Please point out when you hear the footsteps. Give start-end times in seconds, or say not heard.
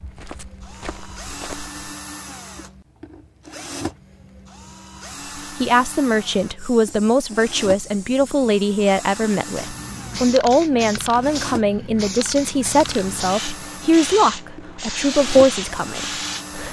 0.0-1.8.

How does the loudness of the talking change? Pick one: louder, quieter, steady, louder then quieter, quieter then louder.
steady.